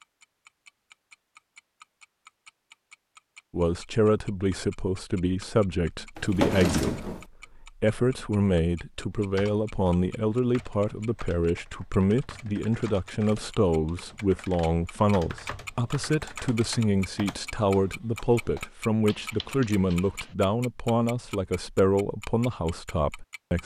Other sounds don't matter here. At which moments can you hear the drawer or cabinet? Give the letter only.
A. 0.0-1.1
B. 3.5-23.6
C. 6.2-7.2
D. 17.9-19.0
C.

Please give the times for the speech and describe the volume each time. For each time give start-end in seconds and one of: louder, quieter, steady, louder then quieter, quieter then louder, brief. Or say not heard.
3.5-23.6 steady.